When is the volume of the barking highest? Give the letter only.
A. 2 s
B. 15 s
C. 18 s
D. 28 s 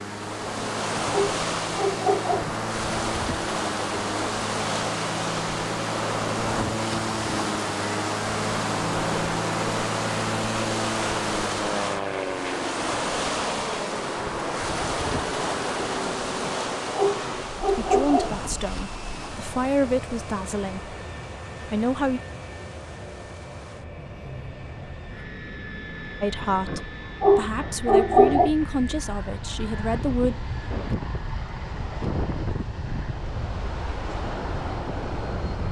D.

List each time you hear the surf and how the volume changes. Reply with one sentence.
You can hear the surf from 0.0 to 35.6 s, getting quieter then louder.